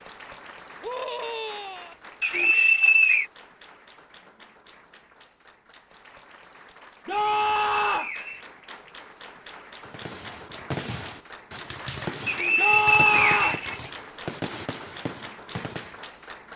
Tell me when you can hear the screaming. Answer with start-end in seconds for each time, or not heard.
0.8-1.9, 7.0-8.1, 12.6-13.6.